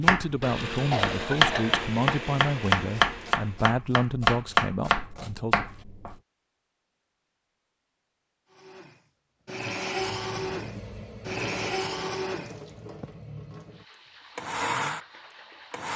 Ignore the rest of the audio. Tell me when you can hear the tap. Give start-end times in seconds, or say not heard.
9.9-15.9.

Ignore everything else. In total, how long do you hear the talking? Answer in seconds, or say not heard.
6 s.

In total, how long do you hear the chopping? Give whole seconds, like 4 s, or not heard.
6 s.